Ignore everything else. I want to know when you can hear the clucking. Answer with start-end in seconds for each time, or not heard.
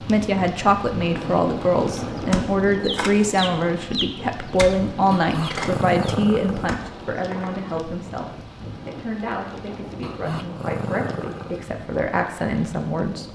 2.1-7.6.